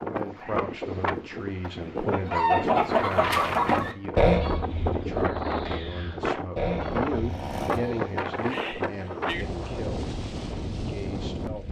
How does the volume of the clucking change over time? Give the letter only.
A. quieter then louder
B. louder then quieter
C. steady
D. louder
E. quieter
A.